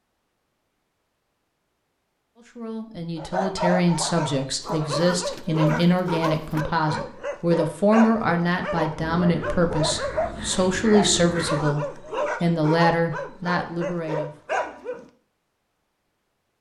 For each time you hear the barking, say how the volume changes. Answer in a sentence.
The barking can be heard from 3.1 to 15.1 s, at a steady volume.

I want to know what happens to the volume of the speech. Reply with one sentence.
The loudness of the speech stays about the same.